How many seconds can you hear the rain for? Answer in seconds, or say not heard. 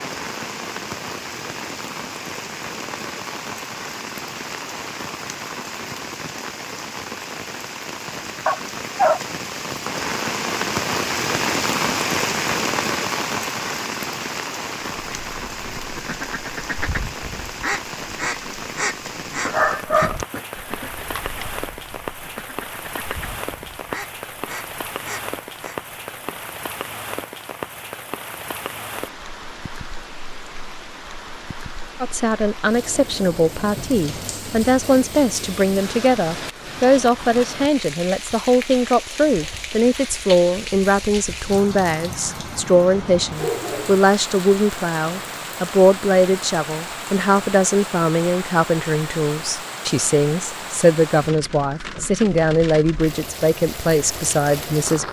55 s.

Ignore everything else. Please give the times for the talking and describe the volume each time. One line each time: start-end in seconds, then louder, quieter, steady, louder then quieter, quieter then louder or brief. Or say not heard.
32.0-55.0 steady.